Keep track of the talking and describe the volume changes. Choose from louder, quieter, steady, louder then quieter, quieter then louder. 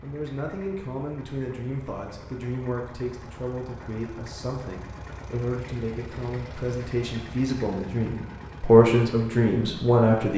louder.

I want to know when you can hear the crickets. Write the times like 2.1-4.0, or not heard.
not heard.